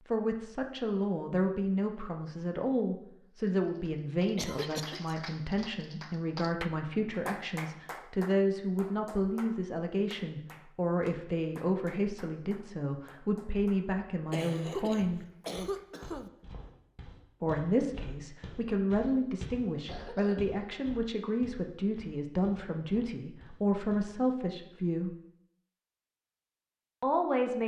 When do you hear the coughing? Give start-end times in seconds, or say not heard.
4.3-5.2, 14.3-16.3, 19.8-20.5.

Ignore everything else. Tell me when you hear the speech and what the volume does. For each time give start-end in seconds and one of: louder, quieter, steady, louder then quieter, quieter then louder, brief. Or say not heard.
0.1-15.2 steady
17.4-25.1 steady
27.0-27.6 brief.